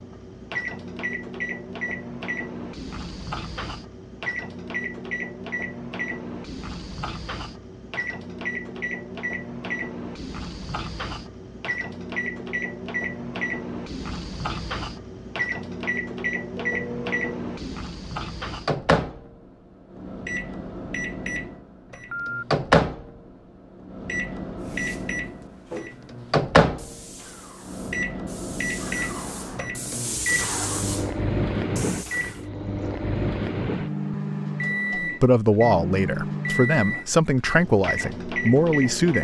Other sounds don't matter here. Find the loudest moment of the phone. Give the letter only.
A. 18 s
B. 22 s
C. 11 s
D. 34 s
B.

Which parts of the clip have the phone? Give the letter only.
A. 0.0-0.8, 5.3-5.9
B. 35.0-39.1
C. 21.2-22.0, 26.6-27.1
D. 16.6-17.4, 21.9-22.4
D.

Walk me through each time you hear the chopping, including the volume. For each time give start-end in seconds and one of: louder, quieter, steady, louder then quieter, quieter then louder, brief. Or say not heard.
not heard.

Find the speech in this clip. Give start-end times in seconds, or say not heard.
35.0-39.1.